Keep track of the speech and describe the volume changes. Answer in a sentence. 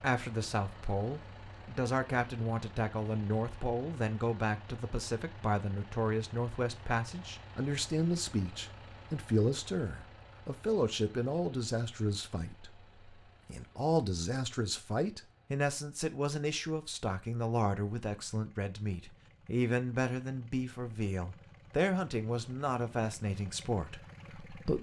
The loudness of the speech stays about the same.